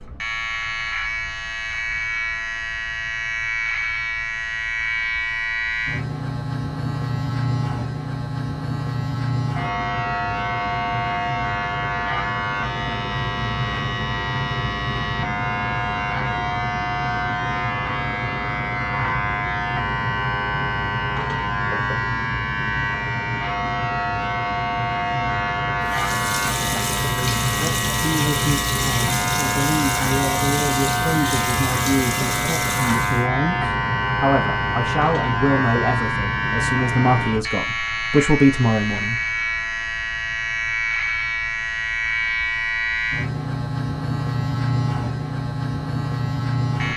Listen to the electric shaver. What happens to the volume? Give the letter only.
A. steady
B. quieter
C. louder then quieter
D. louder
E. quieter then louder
A.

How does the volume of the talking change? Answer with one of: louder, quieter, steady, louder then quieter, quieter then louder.
louder.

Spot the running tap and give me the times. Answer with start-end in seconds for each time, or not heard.
25.8-33.2.